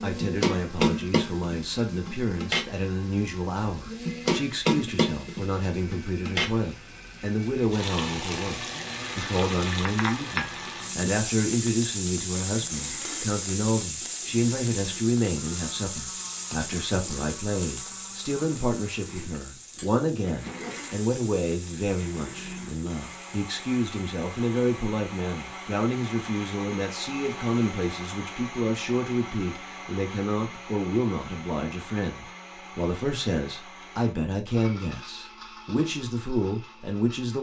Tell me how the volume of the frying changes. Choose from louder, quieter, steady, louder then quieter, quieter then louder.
quieter.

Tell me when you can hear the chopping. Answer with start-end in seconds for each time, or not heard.
not heard.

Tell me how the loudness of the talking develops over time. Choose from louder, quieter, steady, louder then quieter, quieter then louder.
steady.